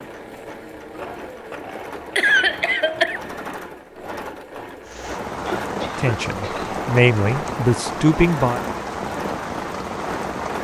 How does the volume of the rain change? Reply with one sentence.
The loudness of the rain stays about the same.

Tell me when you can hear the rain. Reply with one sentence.
The rain can be heard from 4.8 to 10.5 s.